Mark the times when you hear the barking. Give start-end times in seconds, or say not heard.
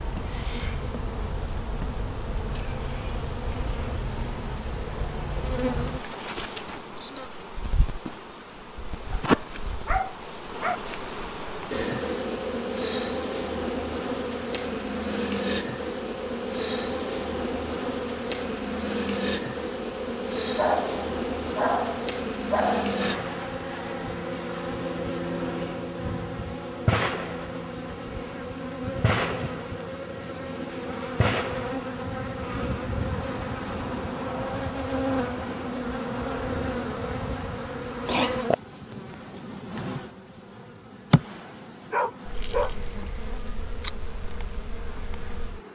9.2-10.8, 20.6-23.1, 41.9-42.8.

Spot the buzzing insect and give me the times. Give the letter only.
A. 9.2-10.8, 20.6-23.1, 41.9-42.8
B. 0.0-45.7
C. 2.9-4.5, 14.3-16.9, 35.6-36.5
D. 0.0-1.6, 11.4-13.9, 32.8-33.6
B.